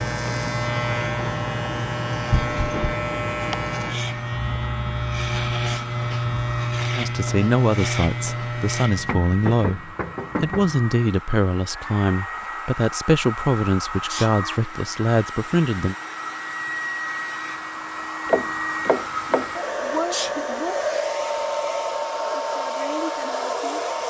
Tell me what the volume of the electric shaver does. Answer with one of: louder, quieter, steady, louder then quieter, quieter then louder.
steady.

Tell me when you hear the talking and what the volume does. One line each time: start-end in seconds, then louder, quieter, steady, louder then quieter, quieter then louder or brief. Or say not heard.
7.0-15.9 steady.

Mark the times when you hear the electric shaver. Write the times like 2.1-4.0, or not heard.
0.0-9.1.